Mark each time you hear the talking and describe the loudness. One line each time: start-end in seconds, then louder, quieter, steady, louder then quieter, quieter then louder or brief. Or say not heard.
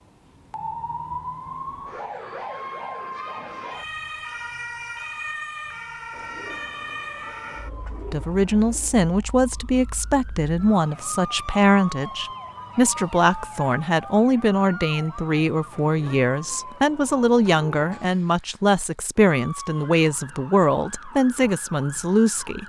8.1-22.6 steady.